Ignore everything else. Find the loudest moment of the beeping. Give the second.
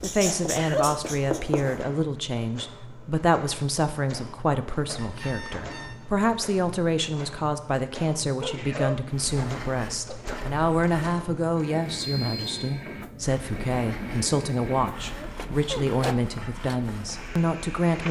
12 s.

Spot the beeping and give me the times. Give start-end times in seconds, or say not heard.
5.0-6.0, 12.0-12.6.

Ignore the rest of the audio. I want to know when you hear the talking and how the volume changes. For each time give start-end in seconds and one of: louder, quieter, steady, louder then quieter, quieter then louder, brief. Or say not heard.
0.0-18.0 steady.